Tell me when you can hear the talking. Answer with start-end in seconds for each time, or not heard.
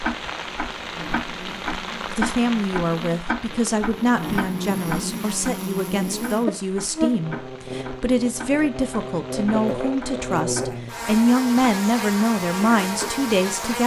2.1-13.8.